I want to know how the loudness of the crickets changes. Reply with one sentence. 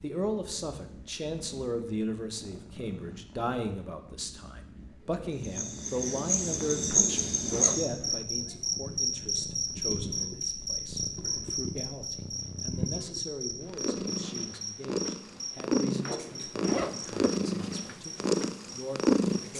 The loudness of the crickets goes down.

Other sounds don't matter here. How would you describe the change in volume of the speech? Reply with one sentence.
The volume of the speech goes down.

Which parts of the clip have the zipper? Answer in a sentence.
You can hear the zipper from 6.9 to 8.2 s and from 16.0 to 17.2 s.